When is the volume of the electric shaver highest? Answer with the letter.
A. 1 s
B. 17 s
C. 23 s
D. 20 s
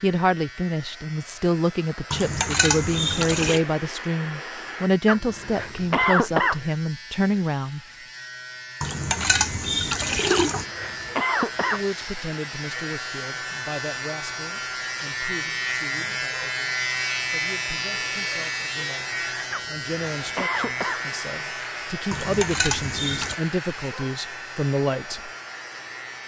B.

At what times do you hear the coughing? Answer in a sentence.
You can hear the coughing from 5.0 to 6.6 s, from 10.4 to 11.8 s and from 19.5 to 21.0 s.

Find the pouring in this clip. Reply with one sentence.
The pouring can be heard from 2.1 to 3.6 s, from 8.8 to 10.7 s and from 22.1 to 23.4 s.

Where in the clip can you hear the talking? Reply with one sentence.
The talking can be heard from 0.0 to 7.8 s and from 11.7 to 25.3 s.